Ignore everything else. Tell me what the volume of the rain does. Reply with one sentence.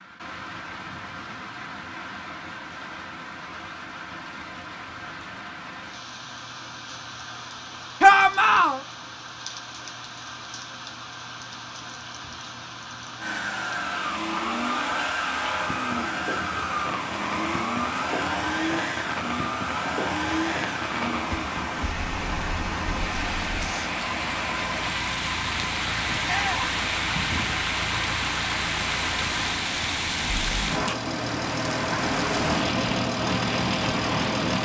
The volume of the rain goes up.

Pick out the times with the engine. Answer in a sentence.
You can hear the engine from 13.2 to 34.5 s.